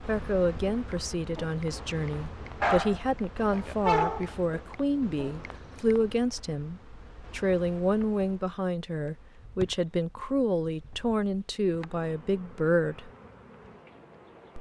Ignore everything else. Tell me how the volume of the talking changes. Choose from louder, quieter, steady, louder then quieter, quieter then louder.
steady.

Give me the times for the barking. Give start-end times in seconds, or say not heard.
0.9-6.0.